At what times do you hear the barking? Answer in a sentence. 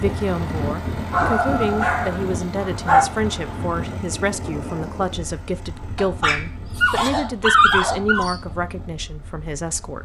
You can hear the barking from 1.1 to 3.0 s and from 6.0 to 8.4 s.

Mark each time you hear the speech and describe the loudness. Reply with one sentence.
The speech can be heard from 0.0 to 10.0 s, at a steady volume.